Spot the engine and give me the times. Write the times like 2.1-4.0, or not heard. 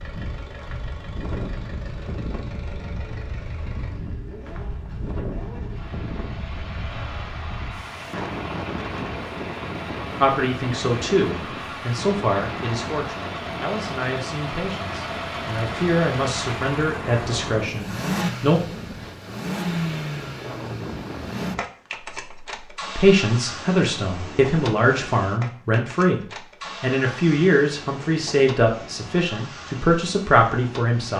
0.0-31.1.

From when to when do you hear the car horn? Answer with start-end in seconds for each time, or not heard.
not heard.